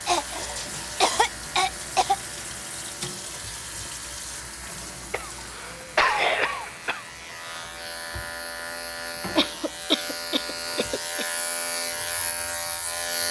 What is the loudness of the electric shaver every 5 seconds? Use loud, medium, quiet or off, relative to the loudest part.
quiet, medium, loud.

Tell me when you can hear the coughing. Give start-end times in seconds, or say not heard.
0.1-2.5, 5.1-7.0, 9.3-11.2.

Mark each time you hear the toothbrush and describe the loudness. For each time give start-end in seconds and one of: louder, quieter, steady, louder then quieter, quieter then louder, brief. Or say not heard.
not heard.